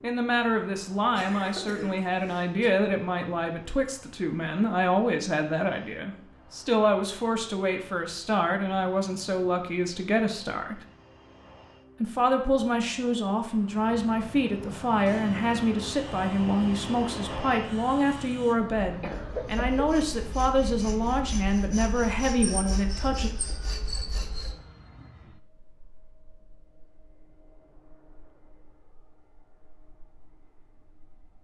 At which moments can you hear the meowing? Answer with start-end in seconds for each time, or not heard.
not heard.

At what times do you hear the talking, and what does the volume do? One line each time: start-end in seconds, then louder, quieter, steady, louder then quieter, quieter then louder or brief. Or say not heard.
0.0-10.8 steady
12.0-23.3 steady.